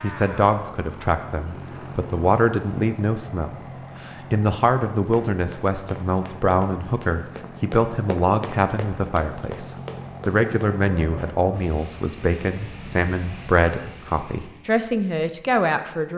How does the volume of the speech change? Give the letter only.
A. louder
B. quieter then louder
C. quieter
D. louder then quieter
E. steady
E.